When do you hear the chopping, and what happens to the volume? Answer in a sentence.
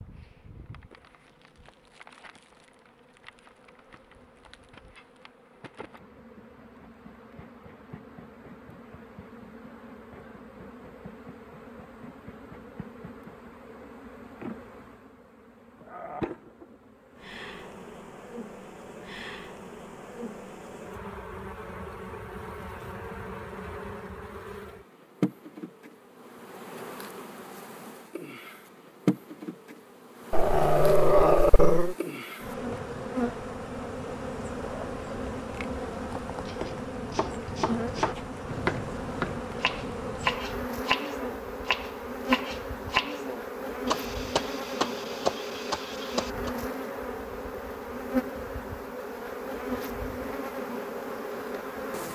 You can hear the chopping from 36.5 to 46.5 s, at a steady volume.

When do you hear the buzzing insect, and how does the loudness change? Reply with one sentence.
The buzzing insect can be heard from 0.0 to 52.0 s, getting louder.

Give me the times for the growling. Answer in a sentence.
You can hear the growling from 30.3 to 31.9 s.